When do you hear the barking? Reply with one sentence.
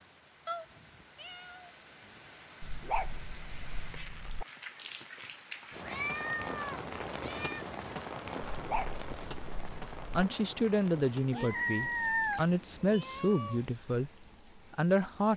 You can hear the barking from 2.6 to 4.5 s and from 8.4 to 10.2 s.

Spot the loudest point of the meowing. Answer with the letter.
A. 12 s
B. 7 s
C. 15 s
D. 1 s
A.